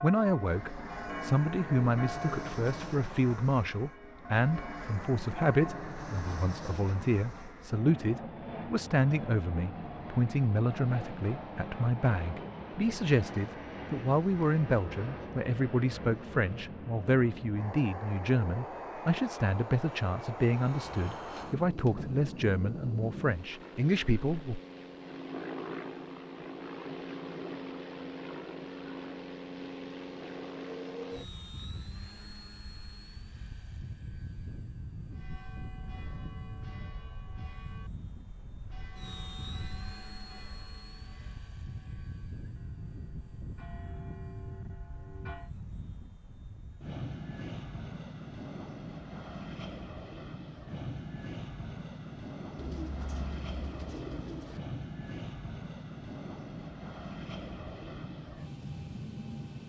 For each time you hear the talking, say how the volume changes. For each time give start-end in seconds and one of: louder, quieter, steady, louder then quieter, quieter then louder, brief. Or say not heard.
0.0-24.6 steady.